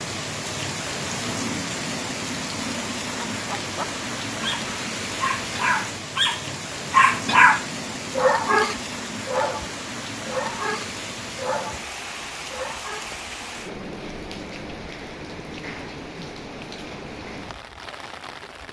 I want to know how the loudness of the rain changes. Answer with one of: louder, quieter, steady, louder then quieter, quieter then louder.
quieter.